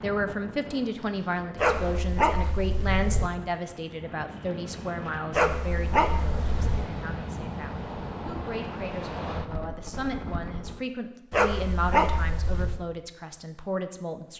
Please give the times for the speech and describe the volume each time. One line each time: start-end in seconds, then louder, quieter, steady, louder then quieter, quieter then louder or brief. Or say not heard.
0.0-14.3 quieter then louder.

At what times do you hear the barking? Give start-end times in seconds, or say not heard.
1.6-3.3, 5.3-6.9, 11.3-12.8.